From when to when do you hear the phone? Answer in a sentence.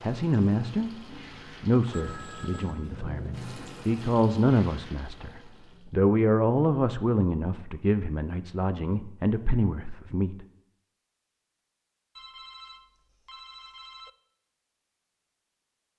The phone can be heard from 1.9 to 3.0 s and from 12.2 to 14.1 s.